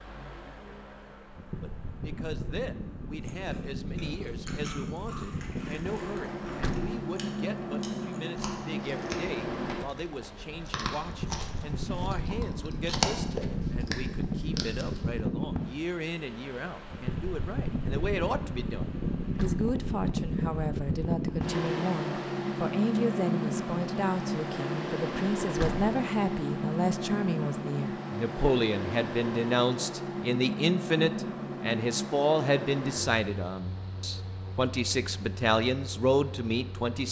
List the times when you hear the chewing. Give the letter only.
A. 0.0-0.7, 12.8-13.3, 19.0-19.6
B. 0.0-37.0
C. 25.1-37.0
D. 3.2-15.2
D.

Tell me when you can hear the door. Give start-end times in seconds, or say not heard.
6.4-7.0, 19.2-19.7, 25.4-25.9.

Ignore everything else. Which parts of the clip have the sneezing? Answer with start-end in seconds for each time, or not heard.
not heard.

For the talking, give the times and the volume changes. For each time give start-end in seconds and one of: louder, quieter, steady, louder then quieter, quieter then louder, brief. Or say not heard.
1.6-37.0 louder.